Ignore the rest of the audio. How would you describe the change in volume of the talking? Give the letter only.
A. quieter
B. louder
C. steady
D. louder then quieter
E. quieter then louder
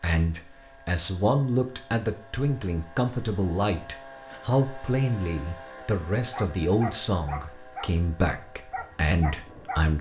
C.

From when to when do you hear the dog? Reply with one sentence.
You can hear the dog from 6.3 to 9.9 s.